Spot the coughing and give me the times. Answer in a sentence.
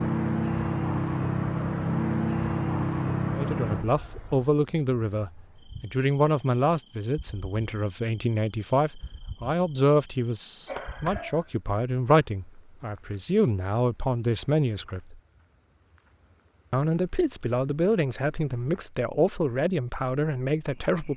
The coughing can be heard from 10.7 to 11.5 s.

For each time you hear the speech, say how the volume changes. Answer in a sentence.
The speech can be heard from 3.3 to 15.2 s, at a steady volume; and from 16.7 to 21.1 s, at a steady volume.